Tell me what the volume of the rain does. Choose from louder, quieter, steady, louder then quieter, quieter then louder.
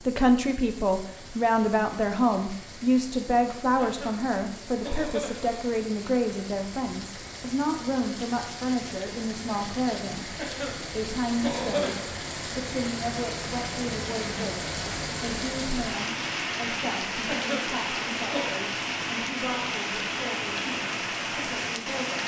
louder.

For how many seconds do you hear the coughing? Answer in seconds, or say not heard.
5 s.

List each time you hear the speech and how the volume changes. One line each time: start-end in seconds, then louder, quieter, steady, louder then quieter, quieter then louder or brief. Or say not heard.
0.1-22.2 quieter.